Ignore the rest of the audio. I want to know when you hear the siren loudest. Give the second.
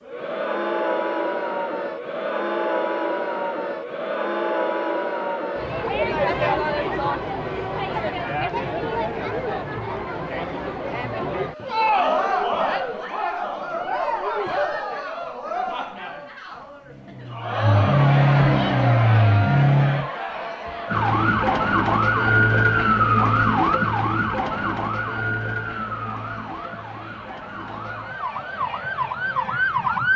23 s.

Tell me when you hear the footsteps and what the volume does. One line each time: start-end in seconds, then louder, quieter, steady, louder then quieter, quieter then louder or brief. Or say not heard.
not heard.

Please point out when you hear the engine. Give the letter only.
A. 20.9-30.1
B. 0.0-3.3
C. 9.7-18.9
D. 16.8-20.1
D.